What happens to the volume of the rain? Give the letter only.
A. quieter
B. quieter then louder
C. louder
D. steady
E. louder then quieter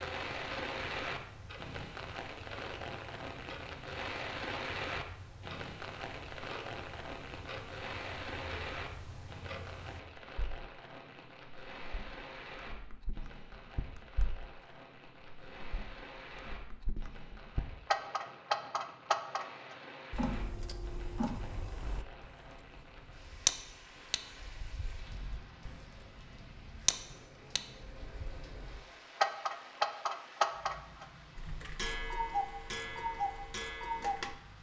A.